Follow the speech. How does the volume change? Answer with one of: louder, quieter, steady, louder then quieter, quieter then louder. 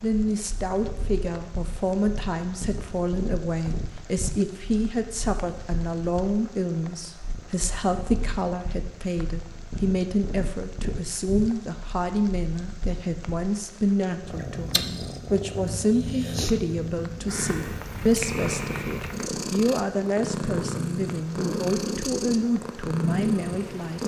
steady.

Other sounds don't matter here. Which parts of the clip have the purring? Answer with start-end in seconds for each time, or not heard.
0.1-24.0.